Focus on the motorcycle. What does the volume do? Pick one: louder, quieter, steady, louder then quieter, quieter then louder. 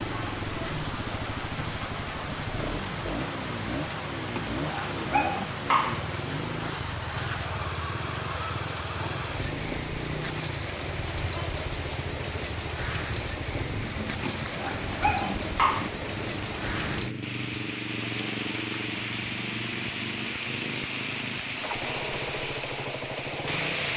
steady.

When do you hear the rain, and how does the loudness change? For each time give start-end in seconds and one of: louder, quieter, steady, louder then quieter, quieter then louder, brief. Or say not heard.
0.0-23.9 steady.